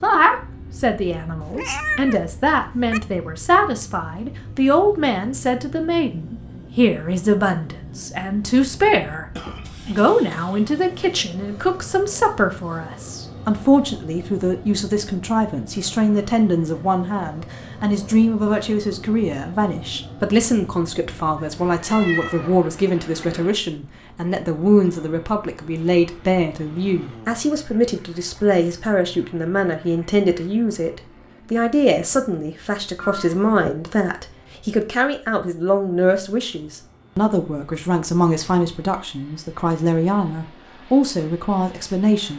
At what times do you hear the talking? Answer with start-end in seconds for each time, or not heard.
0.0-9.2, 9.8-42.3.